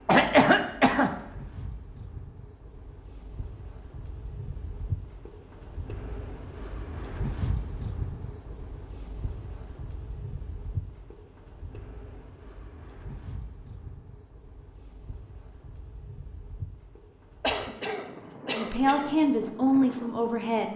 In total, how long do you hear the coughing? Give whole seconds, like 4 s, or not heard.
3 s.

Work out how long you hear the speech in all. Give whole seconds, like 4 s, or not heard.
2 s.